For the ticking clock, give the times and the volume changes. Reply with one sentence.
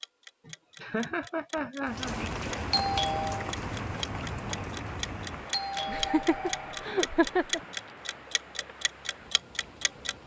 You can hear the ticking clock from 0.0 to 10.2 s, getting louder then quieter.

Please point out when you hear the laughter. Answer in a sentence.
You can hear the laughter from 0.5 to 2.3 s and from 5.8 to 7.6 s.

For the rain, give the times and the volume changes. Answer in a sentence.
You can hear the rain from 1.9 to 10.2 s, getting quieter.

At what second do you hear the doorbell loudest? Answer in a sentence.
The volume of the doorbell peaks at 3 seconds.